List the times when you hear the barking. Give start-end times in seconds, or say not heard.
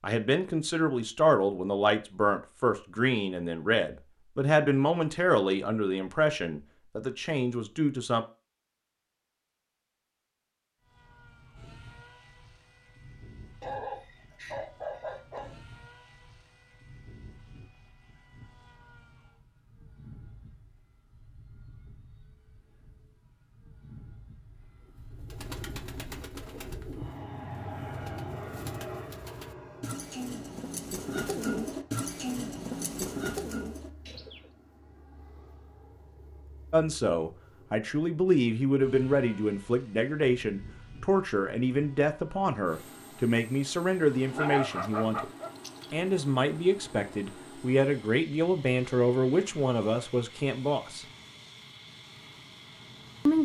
13.6-15.6, 44.3-45.9.